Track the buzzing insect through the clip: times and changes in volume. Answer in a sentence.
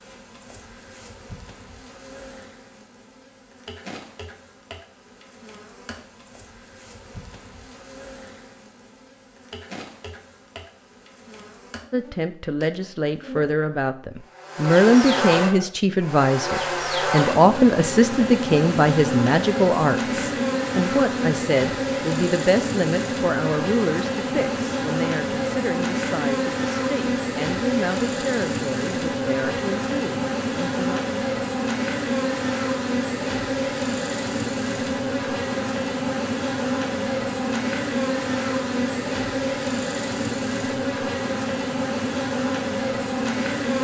You can hear the buzzing insect from 0.0 to 43.8 s, getting louder.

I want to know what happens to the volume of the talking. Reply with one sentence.
The volume of the talking goes down.